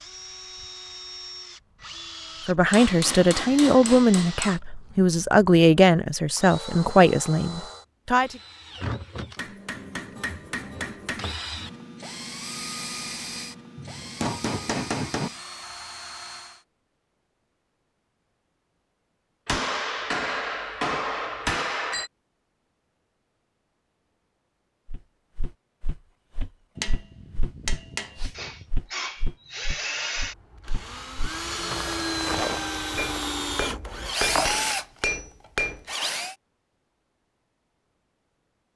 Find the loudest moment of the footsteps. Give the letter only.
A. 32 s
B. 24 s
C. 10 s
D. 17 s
A.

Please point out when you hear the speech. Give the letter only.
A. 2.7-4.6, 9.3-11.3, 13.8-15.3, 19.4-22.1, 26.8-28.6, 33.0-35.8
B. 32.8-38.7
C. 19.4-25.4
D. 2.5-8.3
D.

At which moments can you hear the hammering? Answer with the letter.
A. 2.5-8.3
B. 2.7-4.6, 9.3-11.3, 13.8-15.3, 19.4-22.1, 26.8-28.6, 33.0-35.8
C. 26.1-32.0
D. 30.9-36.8
B.